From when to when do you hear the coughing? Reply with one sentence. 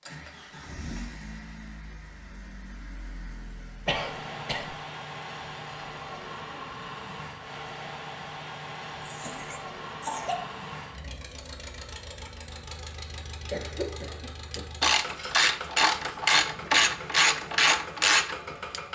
You can hear the coughing from 3.9 to 4.8 s, from 9.0 to 10.5 s and from 13.5 to 14.6 s.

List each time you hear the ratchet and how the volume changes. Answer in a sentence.
The ratchet can be heard from 14.5 to 18.8 s, at a steady volume.